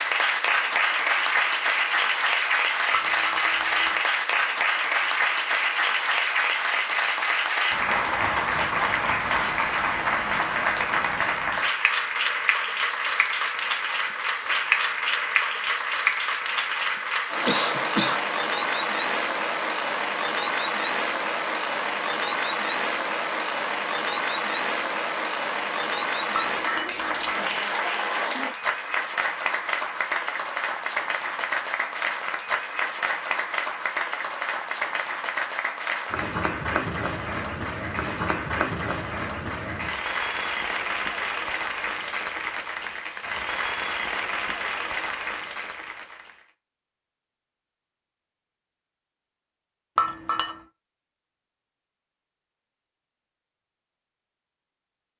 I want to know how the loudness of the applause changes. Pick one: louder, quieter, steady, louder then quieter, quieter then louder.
quieter.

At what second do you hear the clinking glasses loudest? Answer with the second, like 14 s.
50 s.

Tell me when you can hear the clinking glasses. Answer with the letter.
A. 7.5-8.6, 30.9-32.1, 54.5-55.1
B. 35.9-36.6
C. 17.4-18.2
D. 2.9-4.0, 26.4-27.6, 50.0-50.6
D.